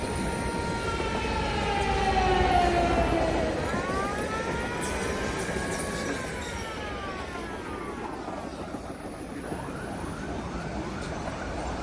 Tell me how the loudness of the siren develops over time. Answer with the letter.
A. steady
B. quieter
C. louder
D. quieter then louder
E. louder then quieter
B.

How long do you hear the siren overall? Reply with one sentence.
The siren can be heard for 12 seconds in total.